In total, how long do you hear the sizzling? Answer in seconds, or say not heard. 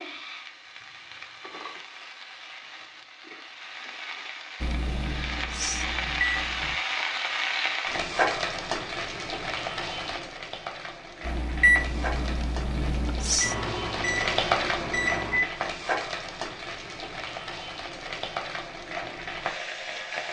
20 s.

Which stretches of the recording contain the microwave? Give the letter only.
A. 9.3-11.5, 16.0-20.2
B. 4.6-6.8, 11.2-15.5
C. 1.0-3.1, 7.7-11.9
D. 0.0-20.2
B.